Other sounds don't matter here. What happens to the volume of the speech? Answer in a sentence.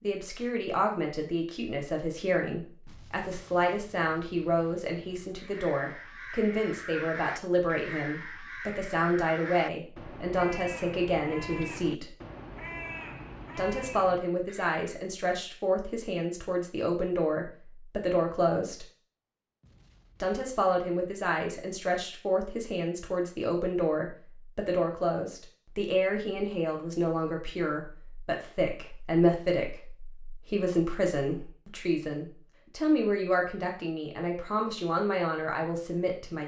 The loudness of the speech stays about the same.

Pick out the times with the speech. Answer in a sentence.
You can hear the speech from 0.0 to 12.2 s, from 13.6 to 18.9 s and from 20.2 to 36.4 s.